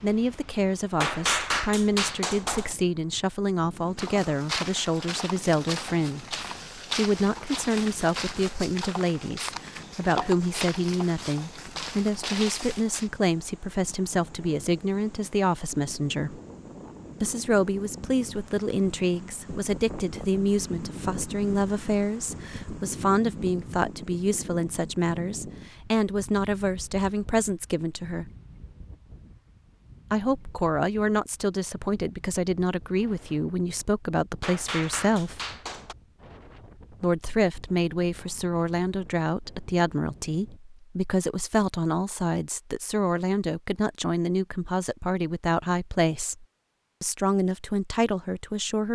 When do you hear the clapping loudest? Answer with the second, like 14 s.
1 s.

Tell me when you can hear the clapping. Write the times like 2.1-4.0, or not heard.
1.0-2.8, 34.4-36.0.